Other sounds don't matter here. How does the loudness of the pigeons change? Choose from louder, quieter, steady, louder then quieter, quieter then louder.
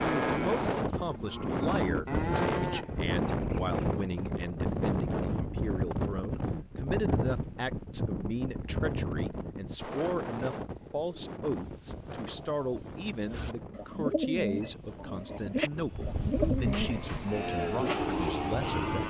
louder.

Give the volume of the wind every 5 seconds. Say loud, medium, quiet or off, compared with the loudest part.
loud, loud, medium, medium.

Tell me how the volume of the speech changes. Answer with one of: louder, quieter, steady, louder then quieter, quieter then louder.
steady.